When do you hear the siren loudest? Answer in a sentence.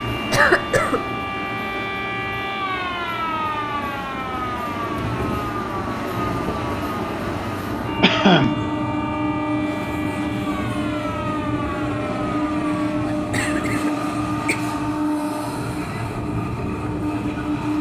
The volume of the siren peaks at 3 seconds.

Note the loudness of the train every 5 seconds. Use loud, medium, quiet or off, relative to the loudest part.
medium, loud, loud, loud.